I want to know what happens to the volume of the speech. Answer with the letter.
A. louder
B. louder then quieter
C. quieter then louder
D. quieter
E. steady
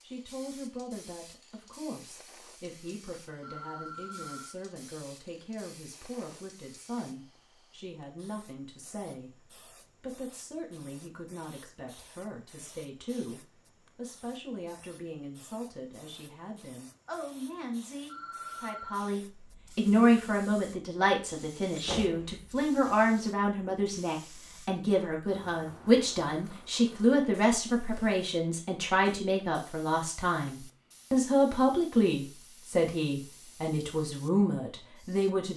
A.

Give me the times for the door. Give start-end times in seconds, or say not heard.
21.8-22.7.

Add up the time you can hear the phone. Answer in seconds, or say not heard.
2 s.